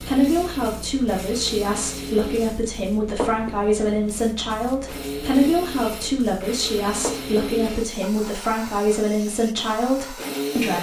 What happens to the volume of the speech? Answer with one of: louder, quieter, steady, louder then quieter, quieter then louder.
steady.